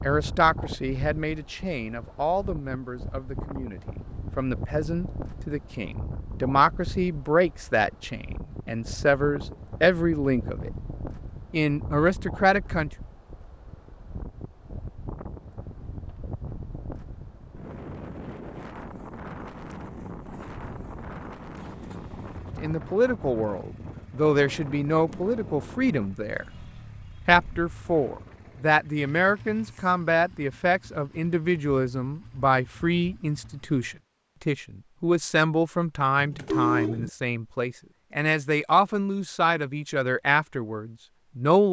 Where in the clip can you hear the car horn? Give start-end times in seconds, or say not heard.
36.1-37.1.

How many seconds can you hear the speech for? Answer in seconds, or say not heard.
30 s.